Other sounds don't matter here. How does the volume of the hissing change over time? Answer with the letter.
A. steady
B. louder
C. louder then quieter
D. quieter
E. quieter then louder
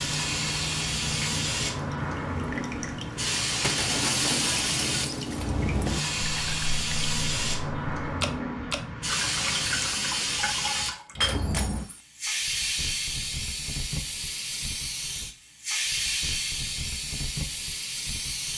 A.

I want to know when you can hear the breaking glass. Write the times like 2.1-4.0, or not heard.
3.6-5.5, 11.2-12.0.